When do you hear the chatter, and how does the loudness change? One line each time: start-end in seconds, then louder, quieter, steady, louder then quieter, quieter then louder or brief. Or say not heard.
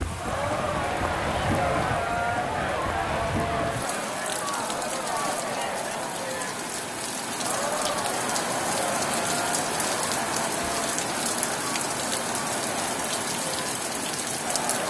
0.0-14.8 quieter.